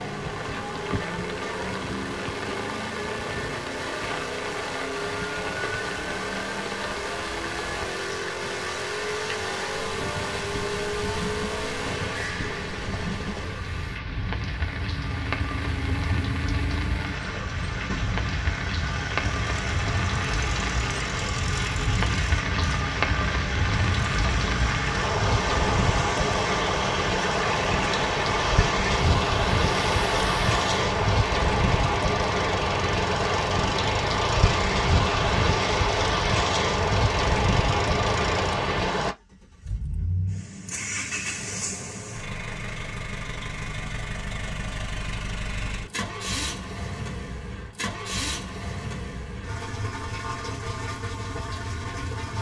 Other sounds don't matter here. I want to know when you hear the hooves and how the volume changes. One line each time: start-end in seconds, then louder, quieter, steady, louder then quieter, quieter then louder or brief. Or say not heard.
not heard.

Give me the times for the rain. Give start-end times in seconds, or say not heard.
0.0-39.1.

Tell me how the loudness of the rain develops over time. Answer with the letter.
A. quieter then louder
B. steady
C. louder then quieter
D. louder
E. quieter
D.